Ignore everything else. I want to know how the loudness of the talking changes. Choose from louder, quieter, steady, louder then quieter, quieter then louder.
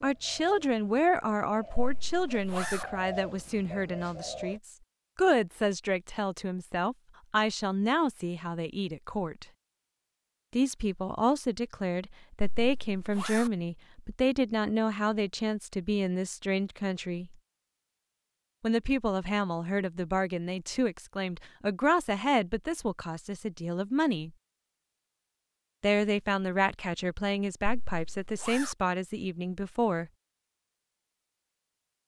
steady.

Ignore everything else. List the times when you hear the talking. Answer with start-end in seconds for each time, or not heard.
0.0-9.4, 10.5-17.4, 18.6-24.3, 25.8-30.1.